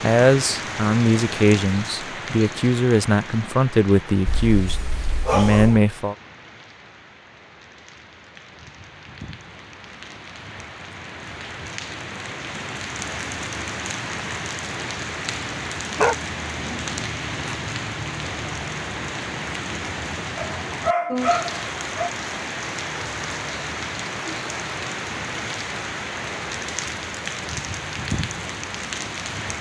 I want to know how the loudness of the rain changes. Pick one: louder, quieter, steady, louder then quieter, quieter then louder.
quieter then louder.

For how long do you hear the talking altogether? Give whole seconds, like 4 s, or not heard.
6 s.